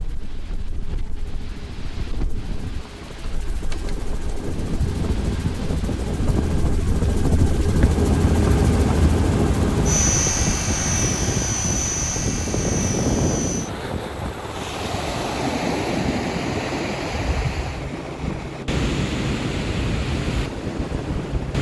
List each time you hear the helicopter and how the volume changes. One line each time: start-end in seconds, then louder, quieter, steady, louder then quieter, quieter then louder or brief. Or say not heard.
0.0-21.5 louder then quieter.